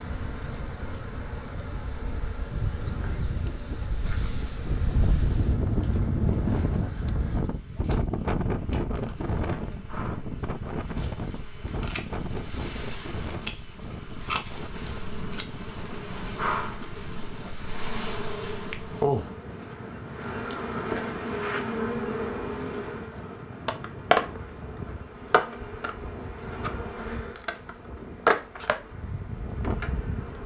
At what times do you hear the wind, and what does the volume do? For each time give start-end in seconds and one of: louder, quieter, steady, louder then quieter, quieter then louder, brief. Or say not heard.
0.0-30.4 quieter.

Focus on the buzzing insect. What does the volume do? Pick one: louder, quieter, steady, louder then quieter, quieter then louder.
louder.